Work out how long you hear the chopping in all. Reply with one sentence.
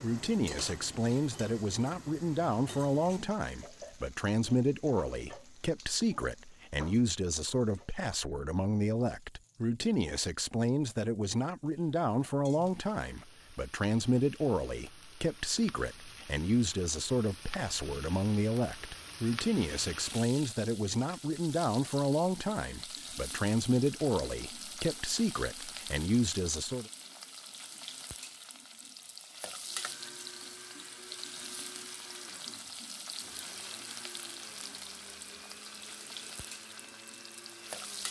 You can't hear the chopping here.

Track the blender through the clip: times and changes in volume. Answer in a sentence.
You can hear the blender from 29.6 to 38.0 s, at a steady volume.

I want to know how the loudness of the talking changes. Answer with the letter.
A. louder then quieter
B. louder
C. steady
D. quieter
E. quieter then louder
C.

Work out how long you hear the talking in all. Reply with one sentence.
The talking can be heard for 27 seconds in total.